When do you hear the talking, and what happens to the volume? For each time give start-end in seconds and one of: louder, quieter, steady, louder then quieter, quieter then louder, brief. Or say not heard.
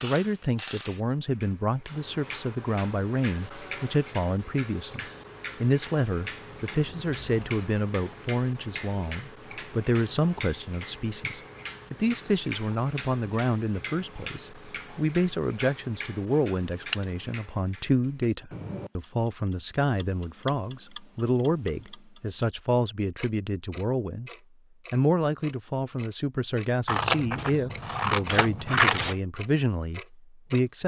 0.0-30.8 steady.